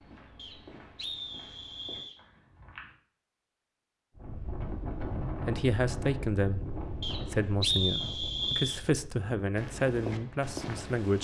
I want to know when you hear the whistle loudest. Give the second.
8 s.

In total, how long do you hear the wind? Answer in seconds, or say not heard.
7 s.